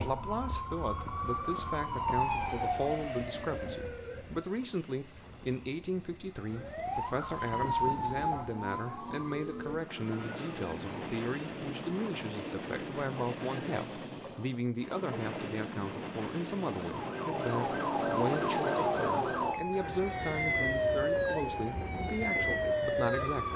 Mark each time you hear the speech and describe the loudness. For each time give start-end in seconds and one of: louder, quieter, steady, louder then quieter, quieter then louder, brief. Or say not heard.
0.0-23.5 steady.